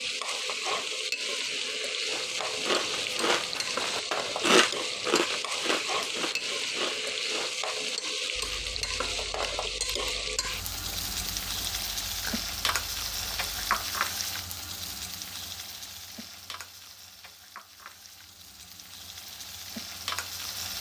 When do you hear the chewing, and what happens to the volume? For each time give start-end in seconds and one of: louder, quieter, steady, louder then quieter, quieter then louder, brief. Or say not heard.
2.1-13.8 quieter then louder.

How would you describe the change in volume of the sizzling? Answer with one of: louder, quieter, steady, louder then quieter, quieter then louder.
quieter.